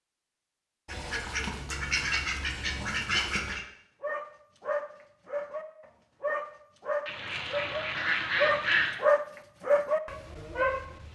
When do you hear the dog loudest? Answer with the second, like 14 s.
9 s.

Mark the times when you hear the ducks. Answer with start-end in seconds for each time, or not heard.
0.8-3.6, 7.0-9.0.